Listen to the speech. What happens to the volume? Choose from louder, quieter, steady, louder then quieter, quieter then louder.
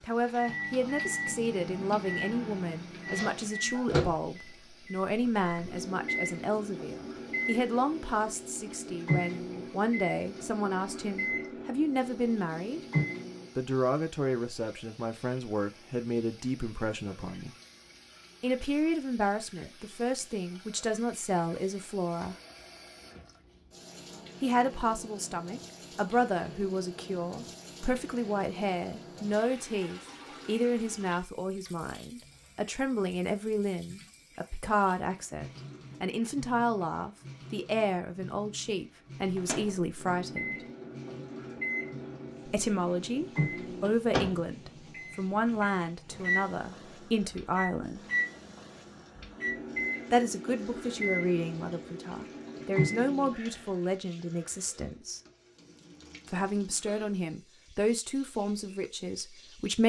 steady.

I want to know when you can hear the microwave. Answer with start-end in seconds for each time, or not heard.
0.2-13.5, 39.4-53.7.